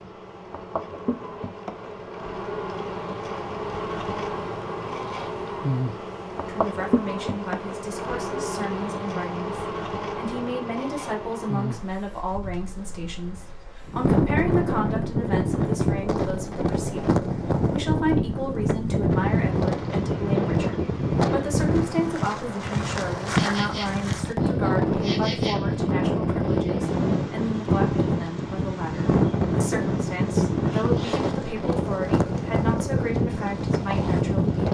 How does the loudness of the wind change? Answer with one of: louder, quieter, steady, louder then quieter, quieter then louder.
steady.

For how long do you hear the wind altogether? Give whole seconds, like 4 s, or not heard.
21 s.